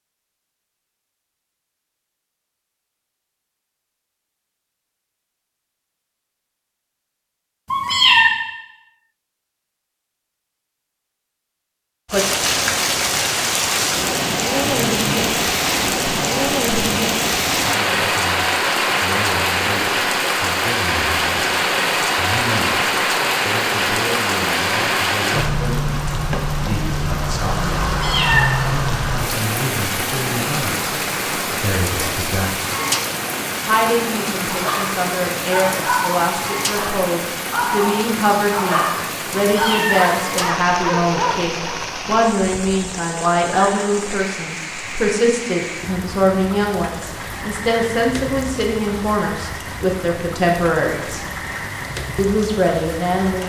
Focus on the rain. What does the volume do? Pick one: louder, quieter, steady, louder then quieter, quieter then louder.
quieter.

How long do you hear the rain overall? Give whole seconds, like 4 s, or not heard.
41 s.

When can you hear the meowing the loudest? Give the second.
8 s.